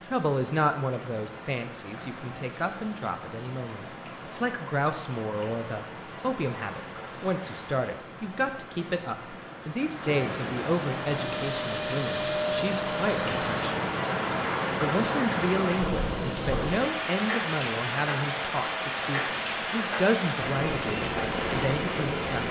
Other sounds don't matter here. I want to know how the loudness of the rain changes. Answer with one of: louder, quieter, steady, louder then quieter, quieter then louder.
louder.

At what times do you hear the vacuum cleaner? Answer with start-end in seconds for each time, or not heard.
10.8-13.8.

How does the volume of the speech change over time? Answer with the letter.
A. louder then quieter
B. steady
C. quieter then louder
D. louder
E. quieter
B.